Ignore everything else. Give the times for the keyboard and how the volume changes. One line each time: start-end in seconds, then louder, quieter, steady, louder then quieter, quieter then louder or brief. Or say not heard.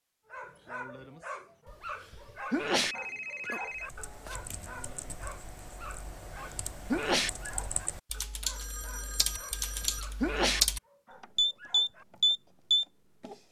3.7-13.3 louder.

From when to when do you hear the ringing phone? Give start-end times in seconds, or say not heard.
2.8-4.5, 8.5-10.1.